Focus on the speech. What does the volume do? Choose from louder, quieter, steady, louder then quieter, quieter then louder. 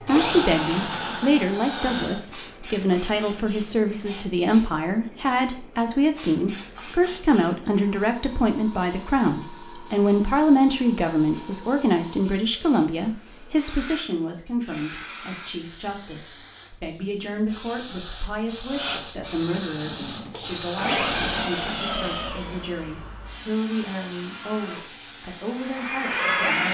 quieter.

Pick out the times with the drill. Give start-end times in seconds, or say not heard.
0.0-2.2, 18.6-26.6.